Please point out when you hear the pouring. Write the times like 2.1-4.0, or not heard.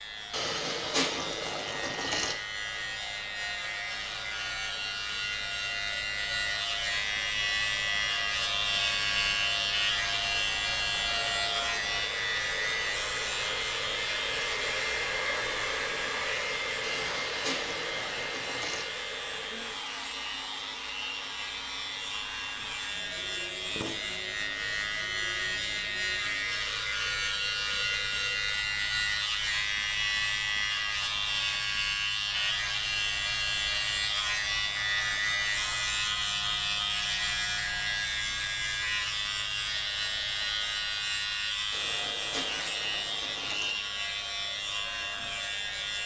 0.3-2.4, 16.8-18.9, 41.7-43.8.